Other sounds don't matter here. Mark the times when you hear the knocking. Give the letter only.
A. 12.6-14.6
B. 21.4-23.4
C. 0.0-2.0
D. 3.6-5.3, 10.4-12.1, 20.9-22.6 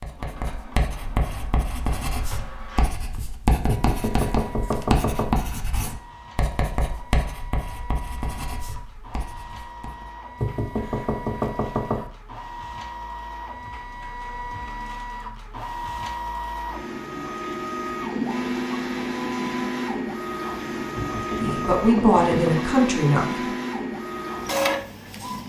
D.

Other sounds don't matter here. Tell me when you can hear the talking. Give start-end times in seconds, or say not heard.
21.4-23.4.